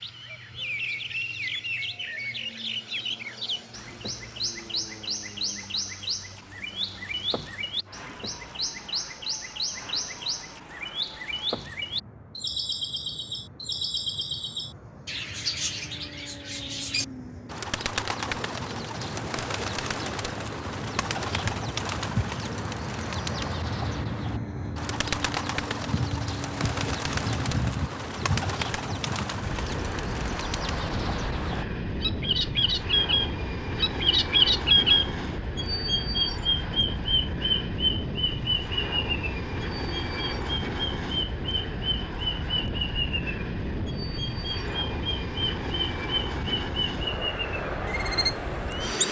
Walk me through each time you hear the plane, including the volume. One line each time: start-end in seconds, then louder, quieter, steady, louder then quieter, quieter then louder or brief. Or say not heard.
0.0-49.0 louder.